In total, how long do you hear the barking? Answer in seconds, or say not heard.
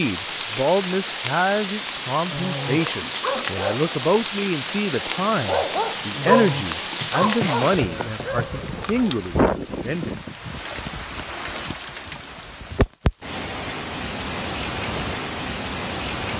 7 s.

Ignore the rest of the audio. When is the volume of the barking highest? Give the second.
6 s.